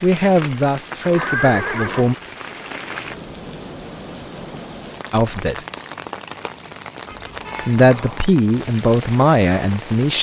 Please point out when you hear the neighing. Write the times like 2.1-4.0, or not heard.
0.8-2.2, 7.1-8.3.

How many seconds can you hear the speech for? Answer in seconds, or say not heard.
5 s.